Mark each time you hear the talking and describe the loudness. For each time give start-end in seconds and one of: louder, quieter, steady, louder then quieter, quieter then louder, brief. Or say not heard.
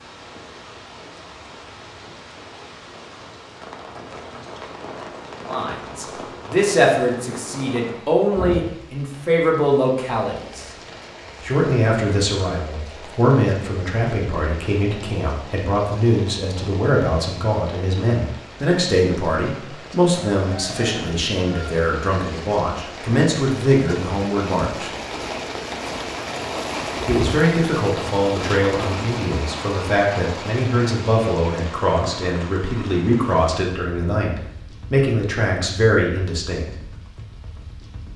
5.5-10.7 steady
11.4-24.9 steady
27.1-36.7 steady.